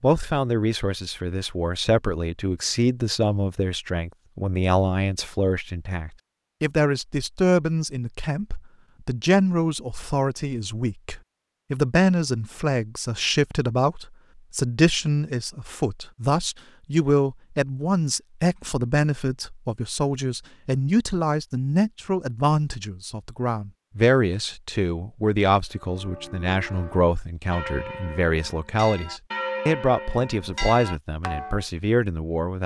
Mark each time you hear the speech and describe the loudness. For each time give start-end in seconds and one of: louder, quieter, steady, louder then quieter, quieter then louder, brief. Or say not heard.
0.0-32.6 steady.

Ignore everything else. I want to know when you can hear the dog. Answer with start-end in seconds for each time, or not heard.
not heard.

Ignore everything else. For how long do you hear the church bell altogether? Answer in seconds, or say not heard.
6 s.